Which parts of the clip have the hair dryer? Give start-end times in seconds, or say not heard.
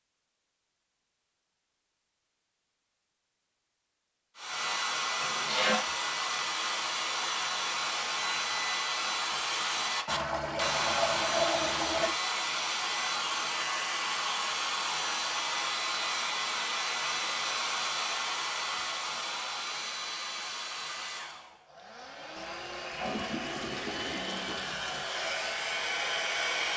4.3-26.7.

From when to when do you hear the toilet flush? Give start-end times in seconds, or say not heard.
5.2-5.8, 10.1-12.2, 22.4-25.1.